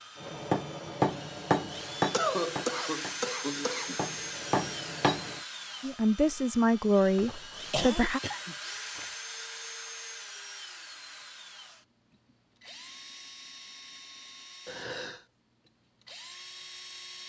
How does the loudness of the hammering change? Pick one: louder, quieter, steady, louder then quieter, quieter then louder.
quieter then louder.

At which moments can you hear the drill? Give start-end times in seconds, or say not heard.
0.0-17.2.